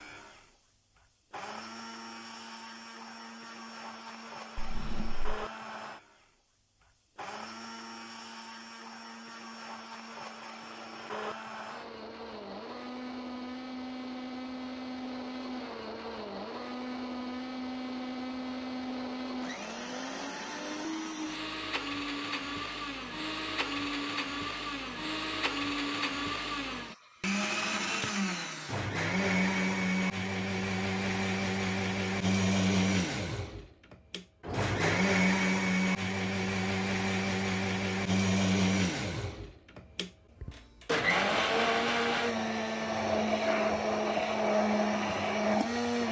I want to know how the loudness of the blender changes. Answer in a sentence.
The loudness of the blender goes up.